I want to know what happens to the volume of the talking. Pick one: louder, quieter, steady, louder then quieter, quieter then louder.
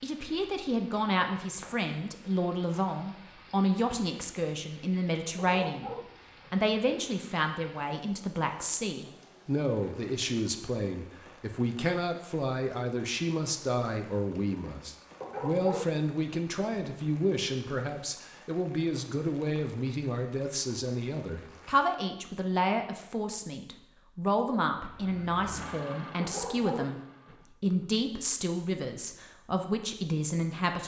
steady.